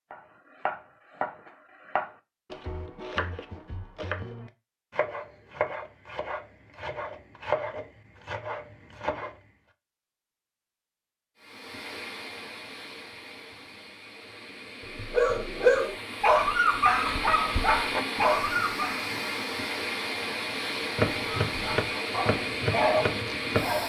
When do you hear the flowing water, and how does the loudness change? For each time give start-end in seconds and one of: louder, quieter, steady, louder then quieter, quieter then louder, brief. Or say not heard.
11.3-23.8 louder.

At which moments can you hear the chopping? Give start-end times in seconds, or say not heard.
0.1-9.4, 20.9-23.8.